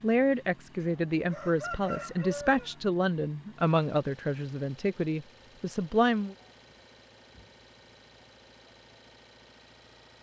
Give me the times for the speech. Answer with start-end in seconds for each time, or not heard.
0.0-6.3.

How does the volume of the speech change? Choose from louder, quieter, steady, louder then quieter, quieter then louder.
steady.